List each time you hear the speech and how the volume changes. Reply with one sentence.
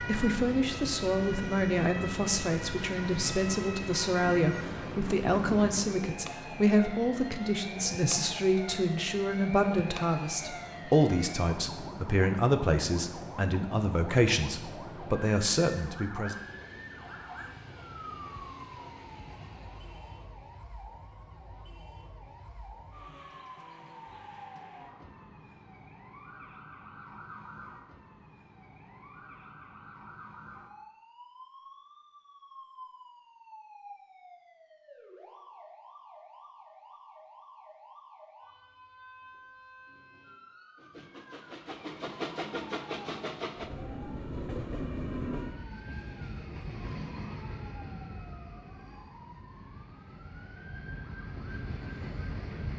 You can hear the speech from 0.0 to 16.4 s, at a steady volume.